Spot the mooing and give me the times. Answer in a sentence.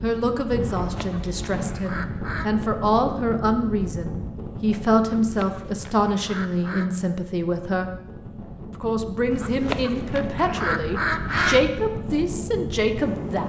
You can't hear the mooing here.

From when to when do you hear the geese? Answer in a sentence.
You can hear the geese from 0.8 to 2.5 s, from 5.2 to 6.9 s and from 9.3 to 11.7 s.